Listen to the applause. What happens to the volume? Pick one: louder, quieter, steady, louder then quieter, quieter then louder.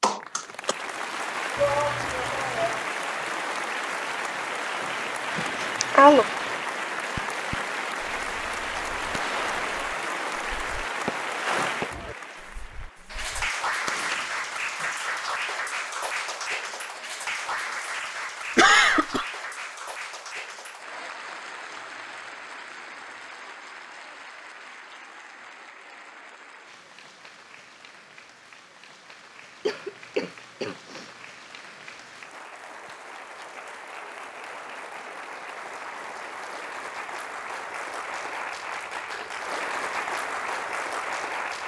quieter then louder.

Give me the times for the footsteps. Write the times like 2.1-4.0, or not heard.
not heard.